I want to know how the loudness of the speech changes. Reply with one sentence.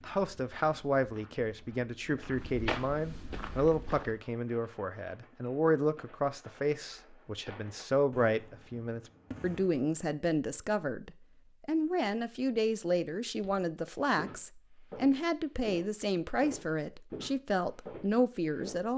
The volume of the speech stays about the same.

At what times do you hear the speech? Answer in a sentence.
The speech can be heard from 0.0 to 18.9 s.